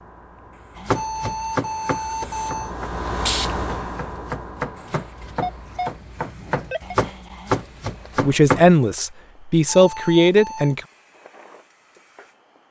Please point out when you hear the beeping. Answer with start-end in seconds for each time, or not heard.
0.9-2.8, 5.4-7.0, 9.7-10.8.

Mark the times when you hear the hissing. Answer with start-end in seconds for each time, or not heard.
0.0-12.6.